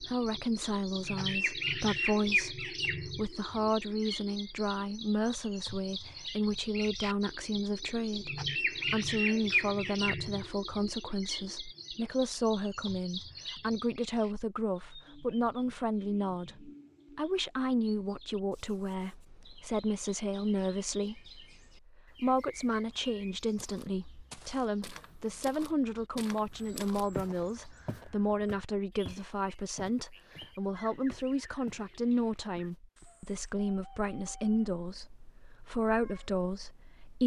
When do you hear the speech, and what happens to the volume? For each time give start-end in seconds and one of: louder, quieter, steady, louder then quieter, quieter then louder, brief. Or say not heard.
0.0-37.2 steady.